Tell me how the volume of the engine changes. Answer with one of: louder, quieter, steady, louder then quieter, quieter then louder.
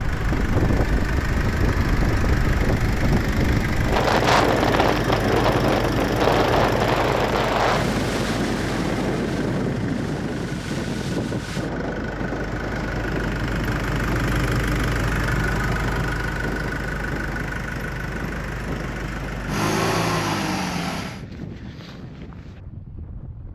quieter then louder.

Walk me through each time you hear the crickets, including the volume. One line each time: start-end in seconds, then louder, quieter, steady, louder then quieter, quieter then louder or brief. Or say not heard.
not heard.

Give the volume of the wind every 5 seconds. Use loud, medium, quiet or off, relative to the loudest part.
loud, loud, medium, quiet, quiet.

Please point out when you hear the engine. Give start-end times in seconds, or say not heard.
0.0-21.2.